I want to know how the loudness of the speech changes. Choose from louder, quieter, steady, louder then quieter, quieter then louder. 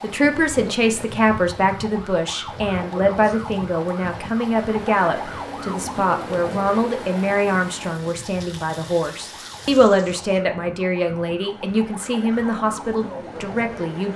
steady.